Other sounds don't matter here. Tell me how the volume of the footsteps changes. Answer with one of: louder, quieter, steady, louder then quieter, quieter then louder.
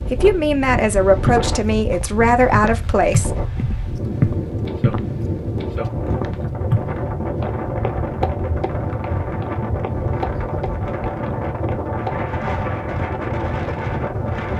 quieter.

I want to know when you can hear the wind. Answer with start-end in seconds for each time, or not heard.
0.0-14.5.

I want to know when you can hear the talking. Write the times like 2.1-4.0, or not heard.
0.0-3.4.